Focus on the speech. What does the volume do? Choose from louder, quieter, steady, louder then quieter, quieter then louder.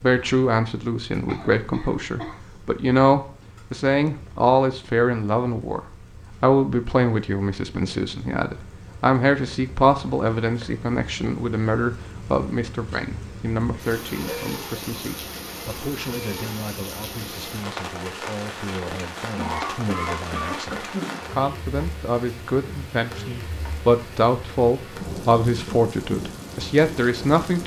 quieter then louder.